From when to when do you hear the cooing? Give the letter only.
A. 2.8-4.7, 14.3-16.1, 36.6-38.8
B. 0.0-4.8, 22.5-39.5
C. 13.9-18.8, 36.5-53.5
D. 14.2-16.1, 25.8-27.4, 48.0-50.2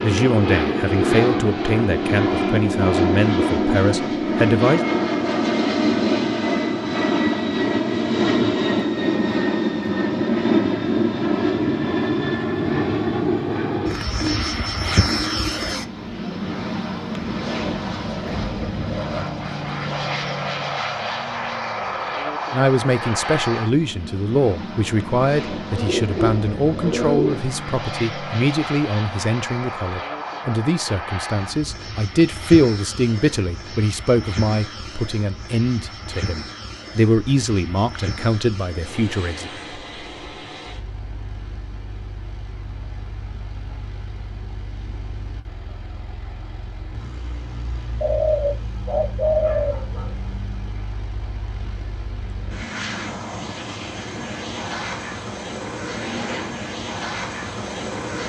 D.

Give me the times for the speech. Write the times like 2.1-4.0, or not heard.
0.0-4.8, 22.5-39.5.